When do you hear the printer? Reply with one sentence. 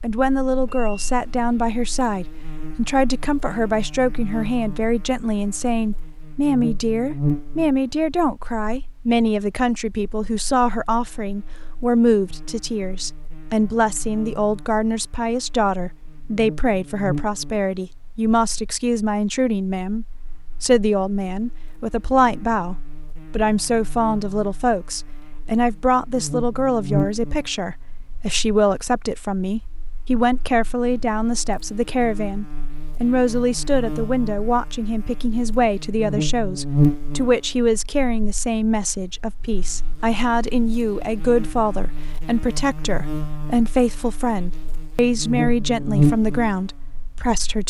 The printer can't be heard in this clip.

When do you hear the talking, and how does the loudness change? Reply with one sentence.
You can hear the talking from 0.0 to 47.6 s, at a steady volume.